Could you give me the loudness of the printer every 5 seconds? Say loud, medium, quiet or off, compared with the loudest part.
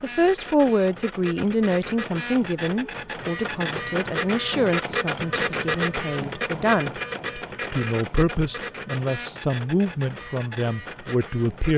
loud, loud, medium.